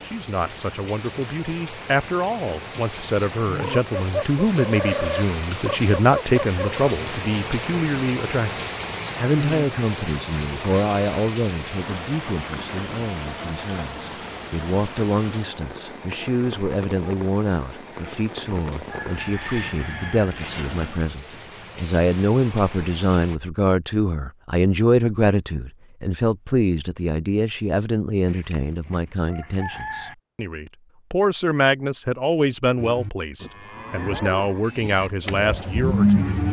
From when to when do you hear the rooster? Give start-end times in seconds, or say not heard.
3.5-6.8, 18.7-20.4, 28.2-30.1.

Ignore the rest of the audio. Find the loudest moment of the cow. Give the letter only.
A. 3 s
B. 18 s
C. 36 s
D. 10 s
C.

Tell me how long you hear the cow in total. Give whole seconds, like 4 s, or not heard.
4 s.